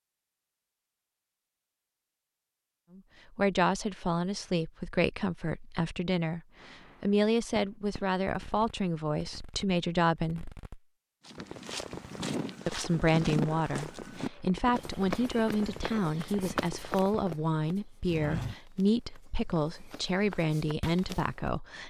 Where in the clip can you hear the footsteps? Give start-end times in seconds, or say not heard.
11.2-21.5.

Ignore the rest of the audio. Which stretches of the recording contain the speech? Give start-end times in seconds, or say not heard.
3.0-10.5, 12.7-21.8.